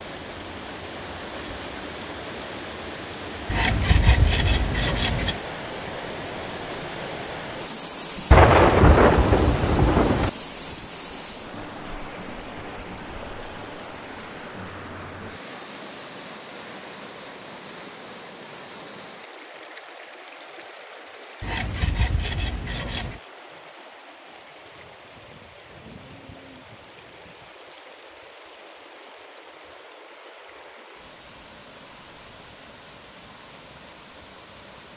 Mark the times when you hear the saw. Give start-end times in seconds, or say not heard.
3.5-5.4, 21.4-23.2.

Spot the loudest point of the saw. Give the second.
4 s.